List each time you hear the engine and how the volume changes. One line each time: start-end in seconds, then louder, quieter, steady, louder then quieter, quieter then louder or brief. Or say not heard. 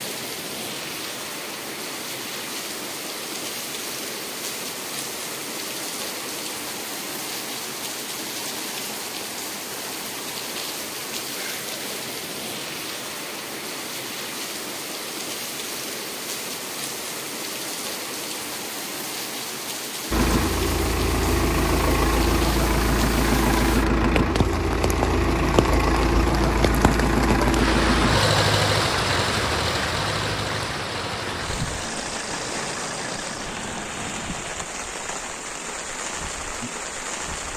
20.1-34.5 quieter.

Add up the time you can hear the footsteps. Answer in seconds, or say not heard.
not heard.